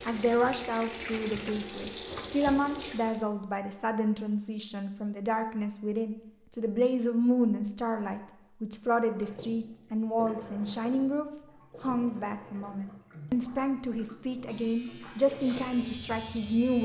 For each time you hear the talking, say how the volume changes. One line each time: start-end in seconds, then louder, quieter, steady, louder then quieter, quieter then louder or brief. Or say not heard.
0.1-16.8 steady.